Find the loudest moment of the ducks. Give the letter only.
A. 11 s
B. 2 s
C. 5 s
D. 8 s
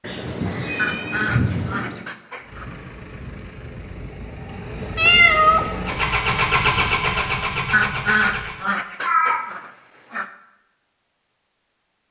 D.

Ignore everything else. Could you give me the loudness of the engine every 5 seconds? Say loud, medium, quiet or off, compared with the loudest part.
quiet, loud, off.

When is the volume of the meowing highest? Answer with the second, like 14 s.
5 s.